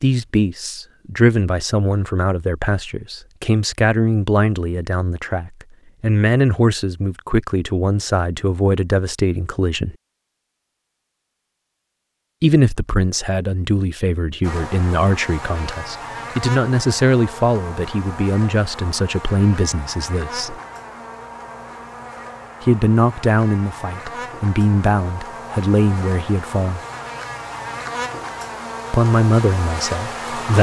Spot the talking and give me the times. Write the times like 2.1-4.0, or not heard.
0.0-9.9, 12.4-20.6, 22.6-26.8, 28.9-30.5.